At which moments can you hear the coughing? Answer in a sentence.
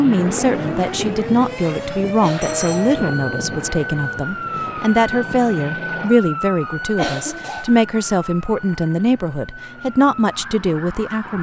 The coughing can be heard from 2.2 to 3.0 s and from 7.0 to 7.7 s.